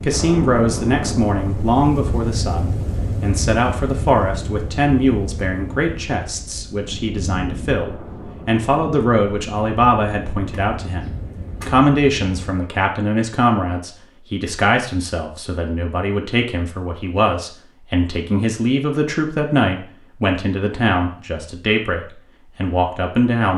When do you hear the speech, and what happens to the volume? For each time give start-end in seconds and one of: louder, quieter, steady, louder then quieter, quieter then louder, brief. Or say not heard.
0.0-23.5 steady.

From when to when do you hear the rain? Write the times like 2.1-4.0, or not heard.
0.0-12.6.